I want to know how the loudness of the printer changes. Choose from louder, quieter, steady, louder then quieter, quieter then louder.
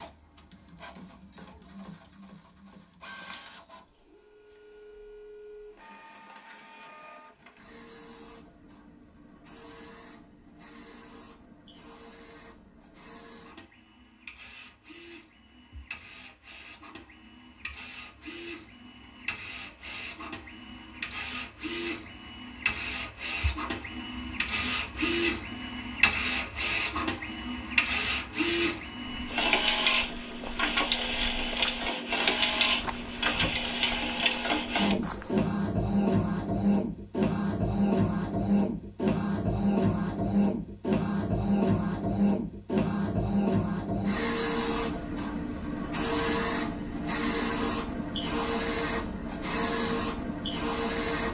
louder.